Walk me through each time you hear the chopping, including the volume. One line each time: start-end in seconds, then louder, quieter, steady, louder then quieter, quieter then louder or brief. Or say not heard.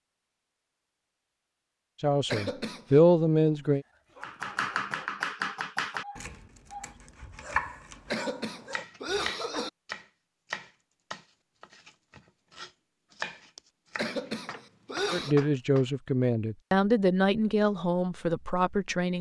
4.2-15.8 quieter.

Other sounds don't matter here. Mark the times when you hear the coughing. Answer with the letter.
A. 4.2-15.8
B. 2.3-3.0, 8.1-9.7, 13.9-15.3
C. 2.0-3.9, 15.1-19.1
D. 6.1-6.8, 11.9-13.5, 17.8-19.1
B.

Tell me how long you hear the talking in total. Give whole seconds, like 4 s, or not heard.
6 s.